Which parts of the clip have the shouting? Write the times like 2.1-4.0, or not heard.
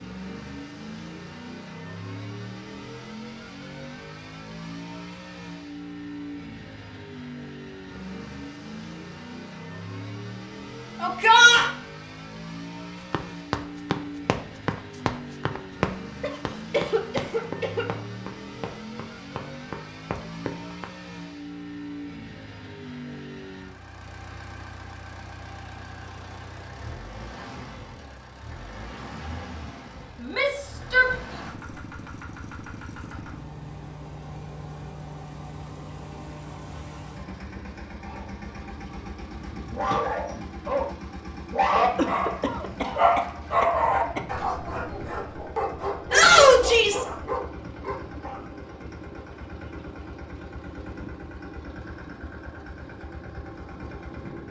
11.0-11.7, 30.2-31.1, 46.1-47.0.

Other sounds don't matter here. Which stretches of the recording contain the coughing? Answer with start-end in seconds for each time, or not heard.
16.2-17.9, 42.0-44.2.